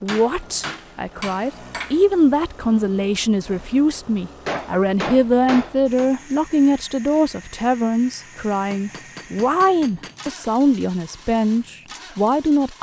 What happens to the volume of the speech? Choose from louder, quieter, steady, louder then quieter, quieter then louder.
steady.